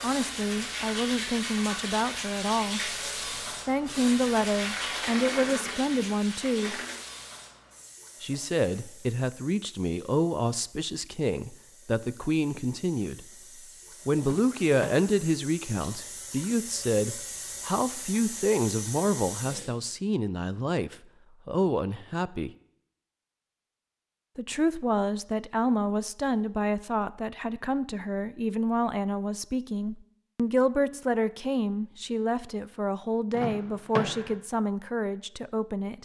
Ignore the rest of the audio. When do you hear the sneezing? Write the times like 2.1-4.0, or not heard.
not heard.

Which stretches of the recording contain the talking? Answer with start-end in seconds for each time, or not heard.
0.0-3.0, 3.6-6.8, 8.2-13.2, 14.1-22.5, 24.4-36.0.